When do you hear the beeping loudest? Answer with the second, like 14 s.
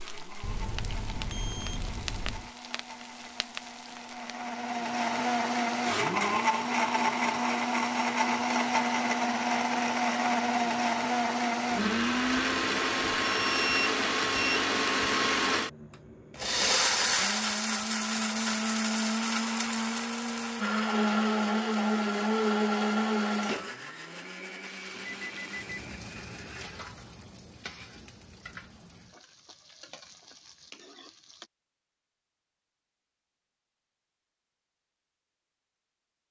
14 s.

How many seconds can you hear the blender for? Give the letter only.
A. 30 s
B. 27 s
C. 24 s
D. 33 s
B.